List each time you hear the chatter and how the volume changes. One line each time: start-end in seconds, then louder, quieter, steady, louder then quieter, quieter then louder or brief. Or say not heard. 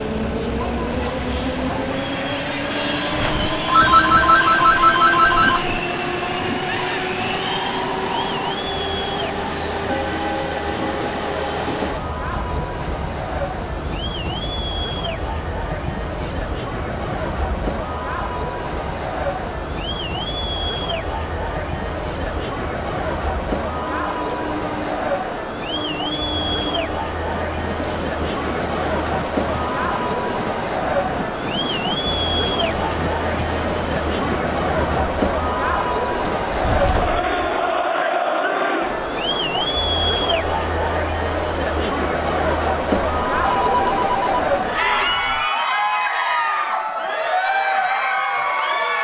0.2-48.9 louder.